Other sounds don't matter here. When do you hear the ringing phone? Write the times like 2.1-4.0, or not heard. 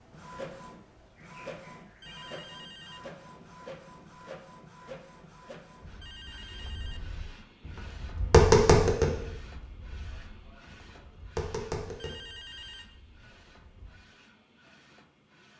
2.0-3.1, 6.0-7.0, 11.9-12.8.